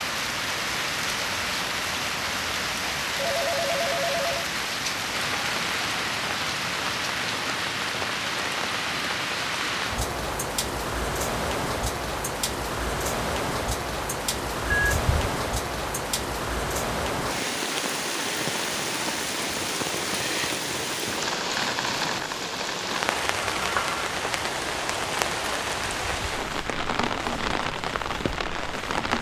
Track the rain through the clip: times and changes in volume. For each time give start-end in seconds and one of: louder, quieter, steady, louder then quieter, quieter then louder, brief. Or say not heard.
0.0-29.1 steady.